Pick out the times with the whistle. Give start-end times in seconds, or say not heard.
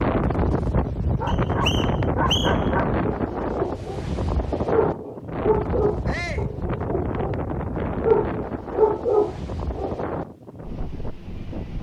1.2-2.7.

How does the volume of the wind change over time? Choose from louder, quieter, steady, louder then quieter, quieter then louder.
quieter.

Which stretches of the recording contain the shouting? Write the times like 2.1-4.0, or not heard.
6.0-6.5.